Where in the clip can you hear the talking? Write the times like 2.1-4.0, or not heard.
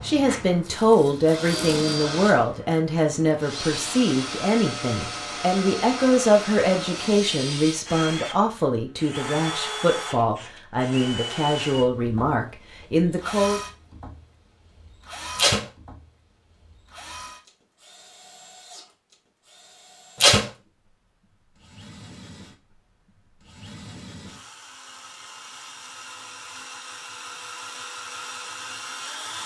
0.0-13.6.